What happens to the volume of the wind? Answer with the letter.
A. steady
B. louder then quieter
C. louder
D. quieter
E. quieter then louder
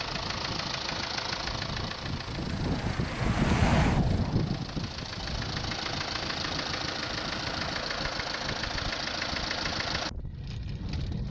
B.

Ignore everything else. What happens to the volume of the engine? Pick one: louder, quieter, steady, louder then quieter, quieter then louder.
quieter then louder.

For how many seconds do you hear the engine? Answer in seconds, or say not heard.
11 s.